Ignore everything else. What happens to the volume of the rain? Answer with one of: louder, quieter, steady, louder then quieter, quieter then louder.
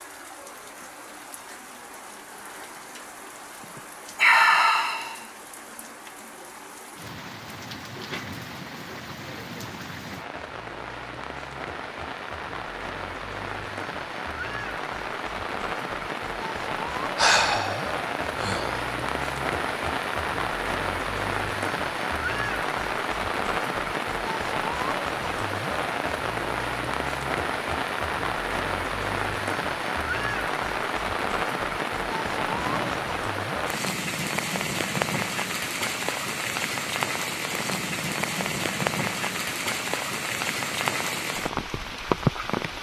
louder.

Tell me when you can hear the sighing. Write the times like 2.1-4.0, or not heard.
3.8-5.2, 17.1-18.8, 32.0-33.0.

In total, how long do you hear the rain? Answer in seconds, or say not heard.
43 s.